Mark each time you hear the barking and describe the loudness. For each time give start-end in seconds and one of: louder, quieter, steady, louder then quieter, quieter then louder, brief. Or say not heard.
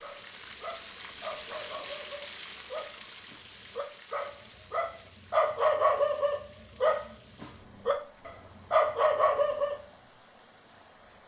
0.0-9.8 louder.